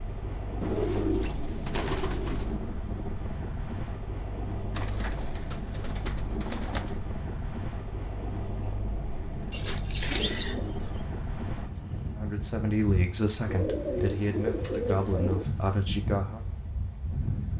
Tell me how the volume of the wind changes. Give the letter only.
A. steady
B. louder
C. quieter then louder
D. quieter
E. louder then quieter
A.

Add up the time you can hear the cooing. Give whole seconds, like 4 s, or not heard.
8 s.